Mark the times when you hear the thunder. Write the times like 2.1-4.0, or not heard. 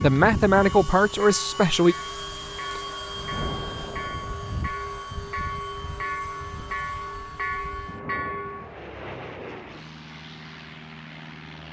3.1-4.3.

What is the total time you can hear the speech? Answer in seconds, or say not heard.
2 s.